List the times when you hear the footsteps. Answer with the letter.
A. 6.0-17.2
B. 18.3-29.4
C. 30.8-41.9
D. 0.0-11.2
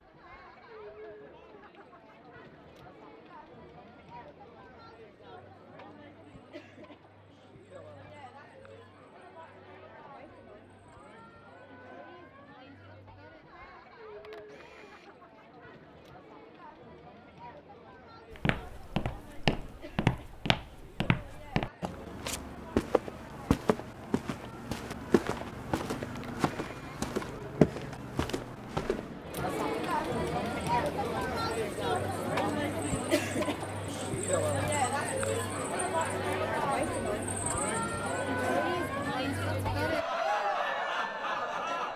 B.